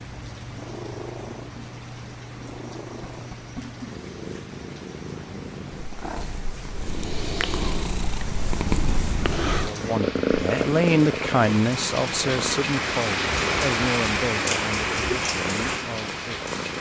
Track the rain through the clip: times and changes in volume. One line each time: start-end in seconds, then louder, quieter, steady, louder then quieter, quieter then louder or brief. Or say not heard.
0.0-16.7 louder.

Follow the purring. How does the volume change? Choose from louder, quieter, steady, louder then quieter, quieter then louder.
louder then quieter.